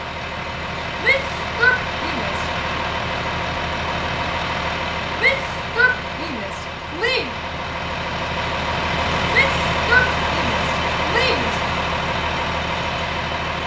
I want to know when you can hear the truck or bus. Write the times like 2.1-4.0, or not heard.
0.0-13.6.